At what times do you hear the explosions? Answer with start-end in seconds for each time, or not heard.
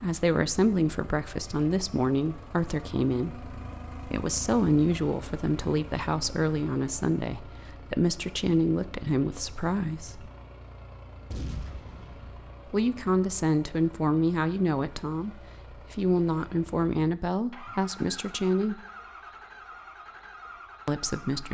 11.3-12.5.